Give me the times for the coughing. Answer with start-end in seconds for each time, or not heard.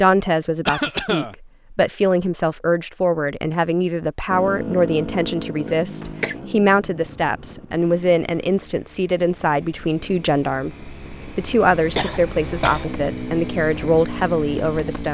0.7-1.4, 5.7-6.3, 11.9-12.8.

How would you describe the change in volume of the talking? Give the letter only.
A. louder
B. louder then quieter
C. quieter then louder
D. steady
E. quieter
D.